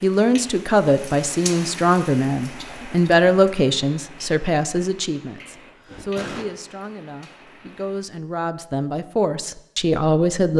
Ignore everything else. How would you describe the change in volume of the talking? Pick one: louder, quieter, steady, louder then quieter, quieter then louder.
quieter then louder.